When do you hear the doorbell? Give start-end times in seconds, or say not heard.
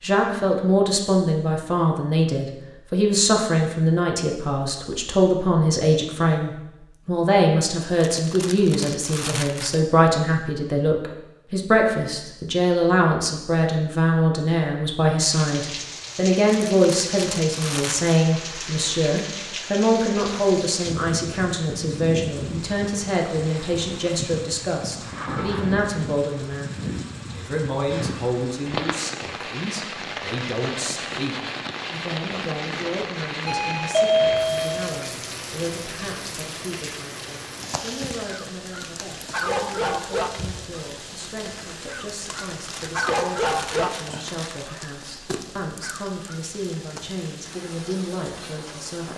33.5-34.9.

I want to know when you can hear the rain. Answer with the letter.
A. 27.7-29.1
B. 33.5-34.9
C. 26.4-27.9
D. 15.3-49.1
D.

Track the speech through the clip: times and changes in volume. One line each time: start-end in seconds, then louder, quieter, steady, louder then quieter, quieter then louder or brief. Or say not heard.
0.0-49.1 quieter.